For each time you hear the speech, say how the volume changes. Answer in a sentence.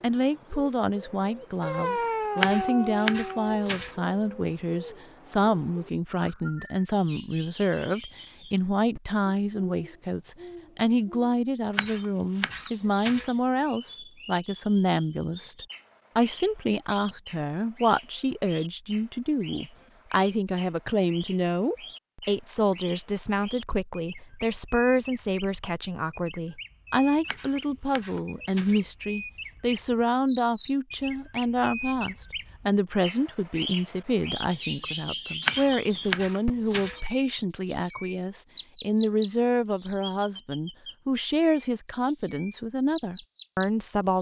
You can hear the speech from 0.0 to 44.1 s, at a steady volume.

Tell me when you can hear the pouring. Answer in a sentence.
The pouring can't be heard in this clip.